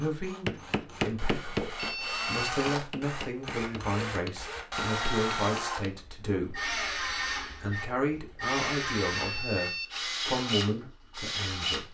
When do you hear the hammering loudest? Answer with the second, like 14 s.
1 s.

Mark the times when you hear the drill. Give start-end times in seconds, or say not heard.
0.0-11.8.